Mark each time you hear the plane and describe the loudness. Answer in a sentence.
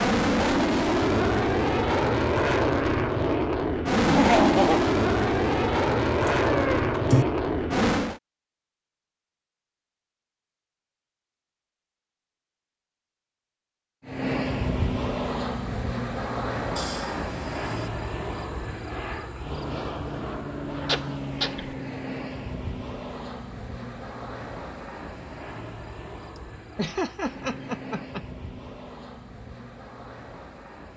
You can hear the plane from 0.0 to 8.2 s, at a steady volume; and from 14.0 to 30.9 s, getting quieter.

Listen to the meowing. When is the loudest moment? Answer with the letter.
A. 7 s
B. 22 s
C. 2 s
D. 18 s
A.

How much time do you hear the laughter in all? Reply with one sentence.
The laughter can be heard for 3 seconds in total.